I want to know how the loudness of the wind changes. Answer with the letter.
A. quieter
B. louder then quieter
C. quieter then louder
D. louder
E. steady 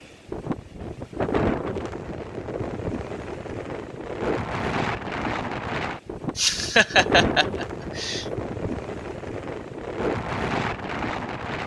E.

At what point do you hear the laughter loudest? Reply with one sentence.
The volume of the laughter peaks at 7 seconds.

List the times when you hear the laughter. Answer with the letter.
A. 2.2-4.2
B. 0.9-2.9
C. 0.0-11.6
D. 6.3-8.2
D.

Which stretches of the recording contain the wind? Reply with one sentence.
You can hear the wind from 0.0 to 11.6 s.